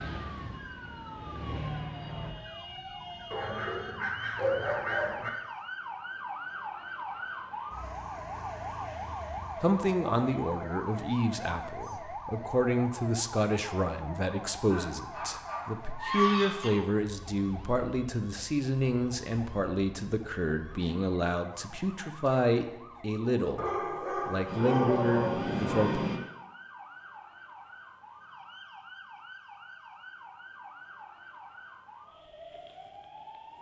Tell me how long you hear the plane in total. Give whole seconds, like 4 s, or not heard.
4 s.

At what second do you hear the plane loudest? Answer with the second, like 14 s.
26 s.